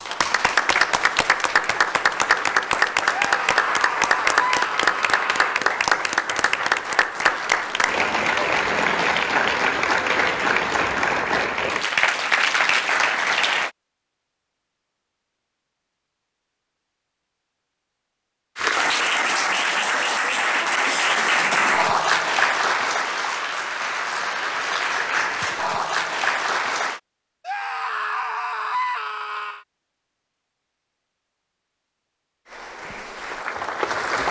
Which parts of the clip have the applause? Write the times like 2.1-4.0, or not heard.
0.0-13.7, 18.6-27.0, 32.5-34.2.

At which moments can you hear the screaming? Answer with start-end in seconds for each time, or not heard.
3.1-5.7, 27.4-29.6.